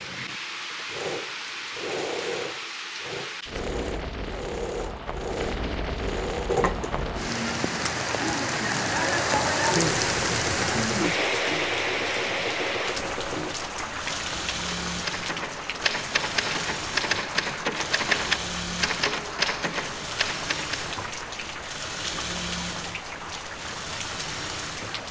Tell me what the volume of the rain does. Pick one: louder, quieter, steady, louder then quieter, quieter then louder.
louder then quieter.